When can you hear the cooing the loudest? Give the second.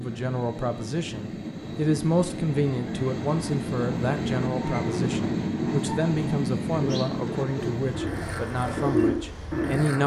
9 s.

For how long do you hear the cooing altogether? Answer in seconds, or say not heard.
3 s.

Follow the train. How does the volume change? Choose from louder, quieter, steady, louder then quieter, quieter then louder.
louder then quieter.